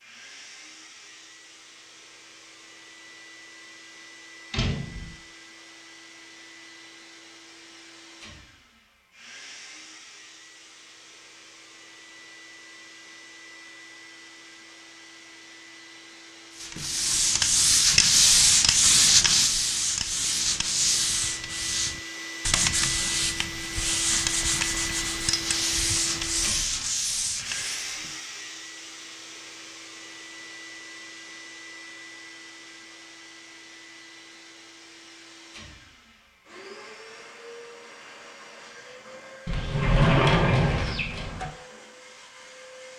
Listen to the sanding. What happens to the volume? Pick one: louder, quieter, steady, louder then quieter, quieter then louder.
quieter.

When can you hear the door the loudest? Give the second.
40 s.